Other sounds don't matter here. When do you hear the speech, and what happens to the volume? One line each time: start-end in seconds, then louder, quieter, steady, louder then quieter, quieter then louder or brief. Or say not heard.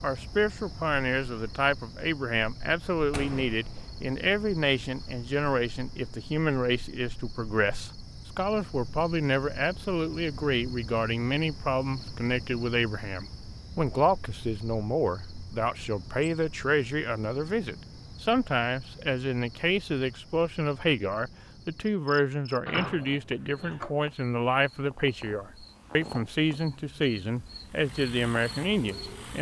0.0-29.3 steady.